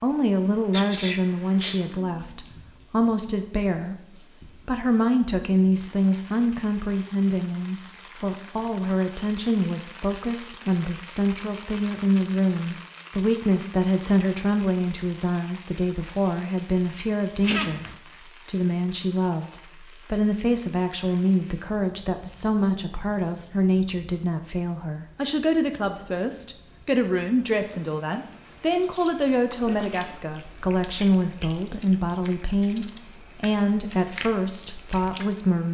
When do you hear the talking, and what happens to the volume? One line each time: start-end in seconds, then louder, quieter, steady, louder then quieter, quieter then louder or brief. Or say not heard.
0.0-35.6 steady.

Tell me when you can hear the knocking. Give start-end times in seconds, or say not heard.
not heard.